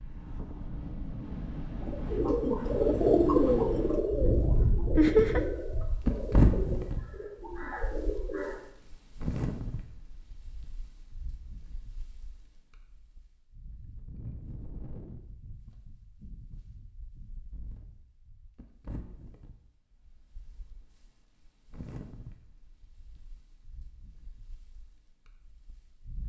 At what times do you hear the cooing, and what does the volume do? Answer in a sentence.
You can hear the cooing from 1.8 to 8.6 s, getting quieter.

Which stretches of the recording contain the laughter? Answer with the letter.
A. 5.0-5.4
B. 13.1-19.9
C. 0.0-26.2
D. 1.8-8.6
A.